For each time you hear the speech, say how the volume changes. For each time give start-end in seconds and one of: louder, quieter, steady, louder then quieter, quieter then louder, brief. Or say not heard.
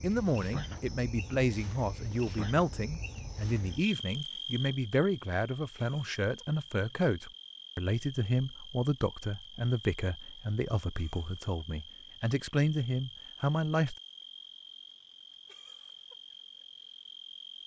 0.0-13.9 steady.